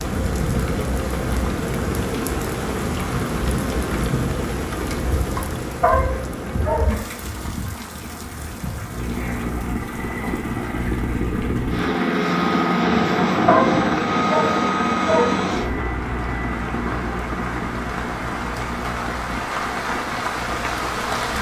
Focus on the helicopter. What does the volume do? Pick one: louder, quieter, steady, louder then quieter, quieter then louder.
louder then quieter.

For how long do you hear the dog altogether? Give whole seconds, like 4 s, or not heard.
3 s.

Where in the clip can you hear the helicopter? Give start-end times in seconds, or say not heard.
8.9-21.3.